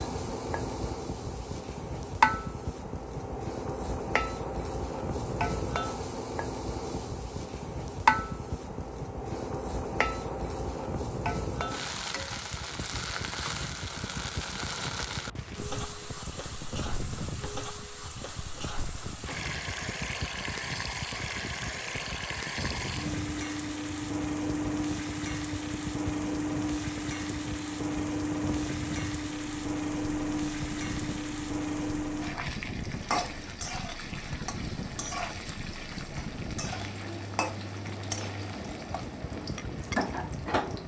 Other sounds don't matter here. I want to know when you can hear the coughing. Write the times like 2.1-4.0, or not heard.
not heard.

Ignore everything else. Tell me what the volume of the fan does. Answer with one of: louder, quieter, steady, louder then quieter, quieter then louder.
steady.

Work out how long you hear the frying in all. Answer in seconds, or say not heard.
41 s.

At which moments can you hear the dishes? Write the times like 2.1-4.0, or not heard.
not heard.